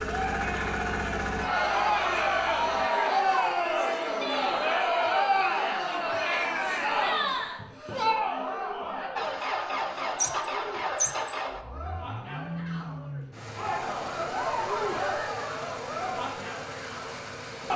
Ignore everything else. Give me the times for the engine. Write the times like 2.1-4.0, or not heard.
0.0-2.9, 9.2-17.7.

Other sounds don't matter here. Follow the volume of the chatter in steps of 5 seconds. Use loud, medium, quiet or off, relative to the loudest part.
loud, loud, medium, medium.